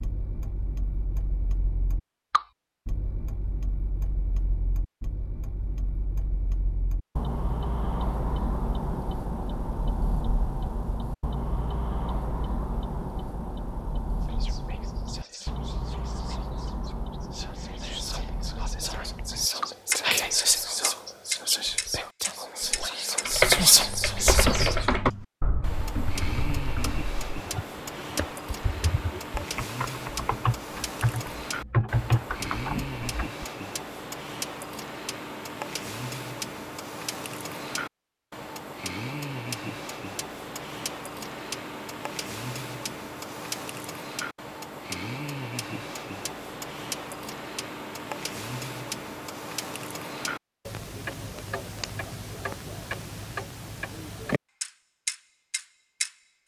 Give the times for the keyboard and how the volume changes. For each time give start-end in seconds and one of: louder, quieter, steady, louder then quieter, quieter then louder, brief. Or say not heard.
22.7-33.5 quieter then louder.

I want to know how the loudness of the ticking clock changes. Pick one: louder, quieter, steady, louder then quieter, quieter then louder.
steady.